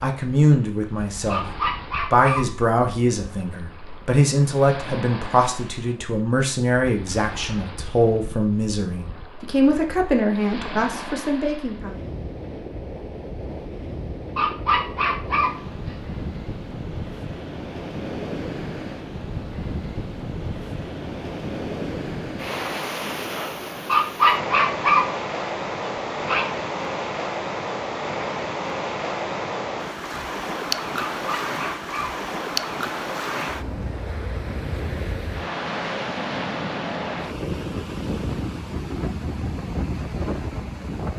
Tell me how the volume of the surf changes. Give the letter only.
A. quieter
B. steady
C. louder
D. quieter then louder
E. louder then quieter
C.